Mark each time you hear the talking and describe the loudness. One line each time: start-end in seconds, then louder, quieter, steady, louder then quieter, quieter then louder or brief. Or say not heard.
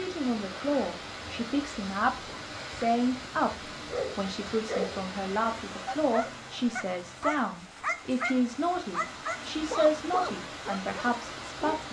0.0-11.8 steady.